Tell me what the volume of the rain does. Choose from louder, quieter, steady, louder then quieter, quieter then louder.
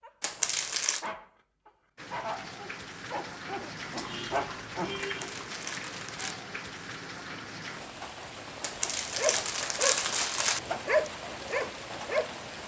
steady.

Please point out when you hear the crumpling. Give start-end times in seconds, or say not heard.
0.2-1.1, 5.0-6.4, 8.6-10.6.